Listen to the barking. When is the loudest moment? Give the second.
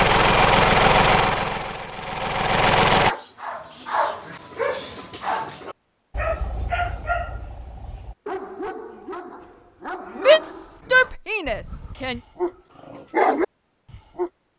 13 s.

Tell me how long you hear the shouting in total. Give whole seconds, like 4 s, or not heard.
2 s.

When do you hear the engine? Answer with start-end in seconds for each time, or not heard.
0.0-3.1.